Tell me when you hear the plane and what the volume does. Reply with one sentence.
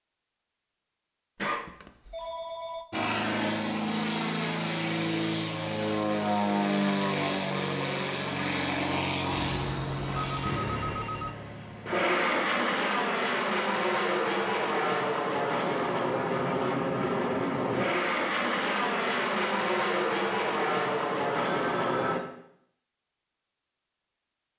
The plane can be heard from 2.9 to 22.2 s, at a steady volume.